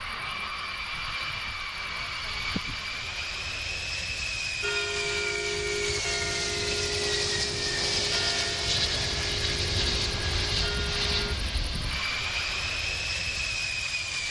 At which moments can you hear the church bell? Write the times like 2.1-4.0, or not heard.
4.6-11.3.